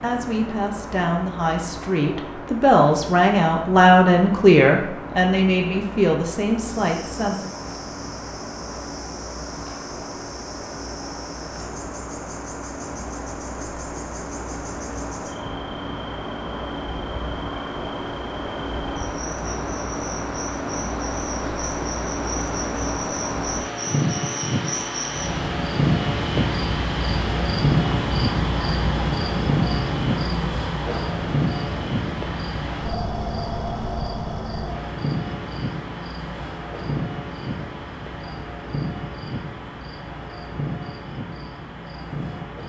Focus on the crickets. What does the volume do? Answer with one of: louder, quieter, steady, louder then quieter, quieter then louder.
louder then quieter.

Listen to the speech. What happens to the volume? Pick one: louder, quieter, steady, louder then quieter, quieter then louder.
louder then quieter.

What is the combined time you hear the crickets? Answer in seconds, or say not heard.
36 s.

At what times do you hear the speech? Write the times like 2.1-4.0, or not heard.
0.0-7.5.